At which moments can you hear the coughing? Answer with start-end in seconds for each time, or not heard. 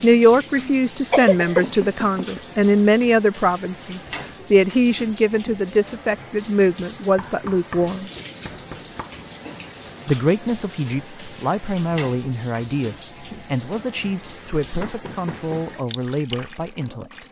0.6-1.6.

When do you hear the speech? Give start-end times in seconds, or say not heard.
0.0-8.1, 10.1-17.2.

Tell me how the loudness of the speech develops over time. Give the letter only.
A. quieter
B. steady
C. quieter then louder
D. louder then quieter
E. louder
A.